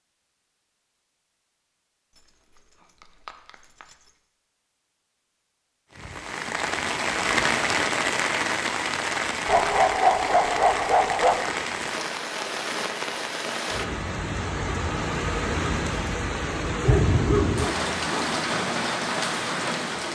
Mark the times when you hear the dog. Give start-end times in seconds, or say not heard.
2.1-4.1, 9.4-11.4, 16.7-18.4.